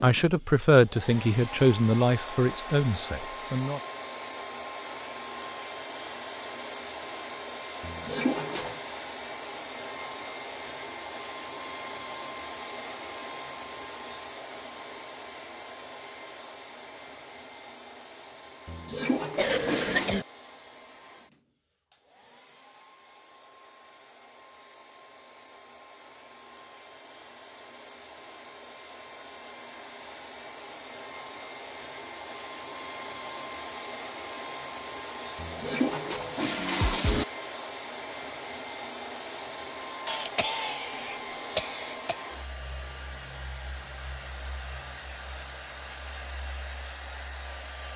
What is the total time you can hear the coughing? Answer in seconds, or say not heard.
3 s.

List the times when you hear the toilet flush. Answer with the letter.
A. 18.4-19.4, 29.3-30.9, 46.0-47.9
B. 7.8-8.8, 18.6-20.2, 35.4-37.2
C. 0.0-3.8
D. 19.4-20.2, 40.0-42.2
B.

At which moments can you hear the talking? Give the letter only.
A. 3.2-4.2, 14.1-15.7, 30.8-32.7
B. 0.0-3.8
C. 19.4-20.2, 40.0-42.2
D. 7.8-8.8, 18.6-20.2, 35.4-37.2
B.